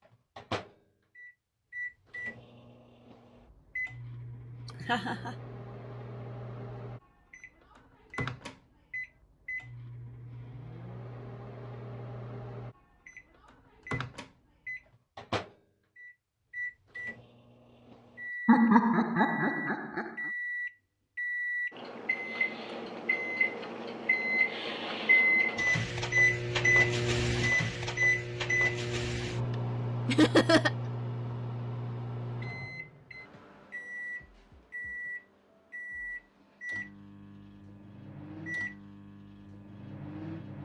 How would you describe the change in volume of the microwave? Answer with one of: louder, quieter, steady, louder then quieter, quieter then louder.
louder then quieter.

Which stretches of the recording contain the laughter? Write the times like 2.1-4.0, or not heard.
4.7-5.3, 18.4-20.1, 30.1-30.7.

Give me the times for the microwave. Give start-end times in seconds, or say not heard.
0.1-40.5.